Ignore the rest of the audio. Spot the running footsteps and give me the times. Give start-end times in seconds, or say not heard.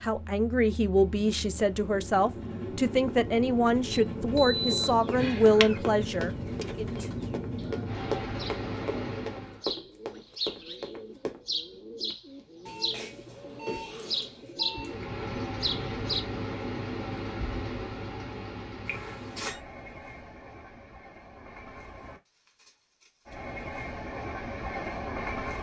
4.3-11.4.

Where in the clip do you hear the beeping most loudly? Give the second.
5 s.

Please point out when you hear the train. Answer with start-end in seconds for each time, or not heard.
0.0-9.7, 14.7-25.5.